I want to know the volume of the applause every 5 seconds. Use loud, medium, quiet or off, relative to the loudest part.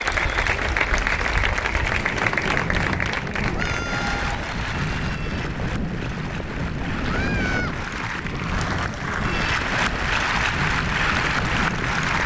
loud, medium, loud.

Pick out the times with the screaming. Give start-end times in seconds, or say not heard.
3.5-4.2, 7.0-7.8.